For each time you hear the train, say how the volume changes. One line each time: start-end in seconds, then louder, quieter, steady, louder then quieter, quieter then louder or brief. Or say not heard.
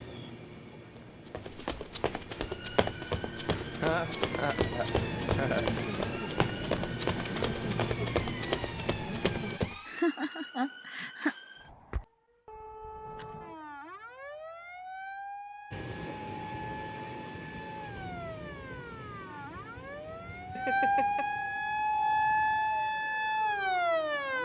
0.0-9.6 louder
15.7-24.3 quieter.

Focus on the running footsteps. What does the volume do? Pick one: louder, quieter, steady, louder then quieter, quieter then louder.
steady.